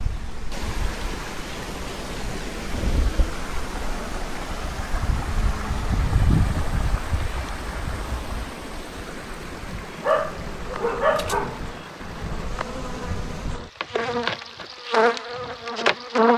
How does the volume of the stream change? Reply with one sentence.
The loudness of the stream goes down.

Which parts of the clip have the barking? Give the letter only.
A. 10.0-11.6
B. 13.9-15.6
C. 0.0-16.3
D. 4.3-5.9
A.